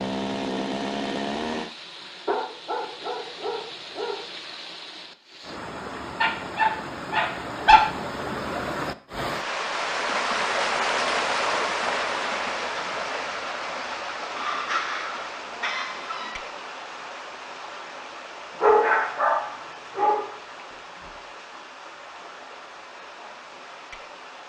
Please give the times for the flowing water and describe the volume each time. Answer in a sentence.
The flowing water can be heard from 0.1 to 24.4 s, getting louder then quieter.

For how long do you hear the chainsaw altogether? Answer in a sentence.
The chainsaw can be heard for 2 seconds in total.